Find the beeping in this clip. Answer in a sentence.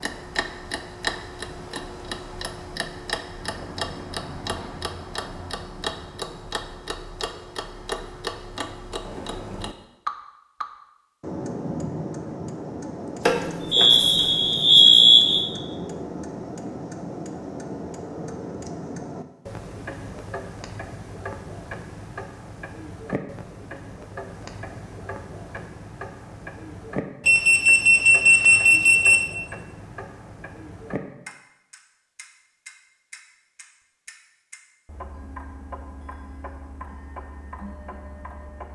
You can hear the beeping from 13.2 to 15.4 s and from 27.2 to 29.2 s.